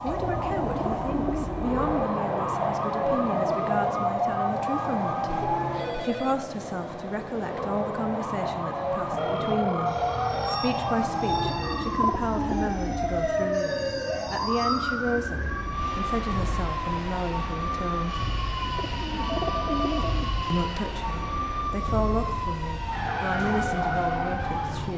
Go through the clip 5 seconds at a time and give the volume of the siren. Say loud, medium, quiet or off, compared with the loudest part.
loud, loud, loud, medium, loud.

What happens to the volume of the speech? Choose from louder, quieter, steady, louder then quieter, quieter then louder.
steady.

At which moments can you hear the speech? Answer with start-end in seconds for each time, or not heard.
0.0-5.3, 6.0-18.2, 20.5-24.9.